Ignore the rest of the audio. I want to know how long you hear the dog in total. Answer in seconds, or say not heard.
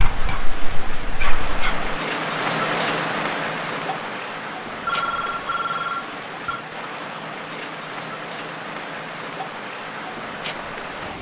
2 s.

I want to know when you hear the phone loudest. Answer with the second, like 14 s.
5 s.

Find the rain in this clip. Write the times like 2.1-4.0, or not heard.
0.0-11.1.